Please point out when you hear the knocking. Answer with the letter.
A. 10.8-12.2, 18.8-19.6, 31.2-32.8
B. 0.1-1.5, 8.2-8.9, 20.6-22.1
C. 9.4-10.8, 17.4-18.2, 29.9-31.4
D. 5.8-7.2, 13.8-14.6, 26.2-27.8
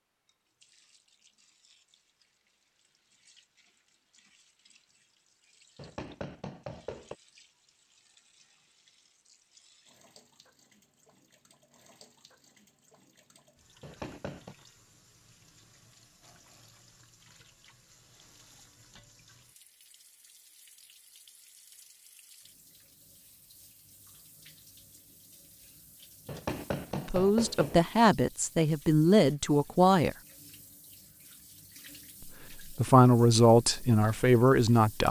D.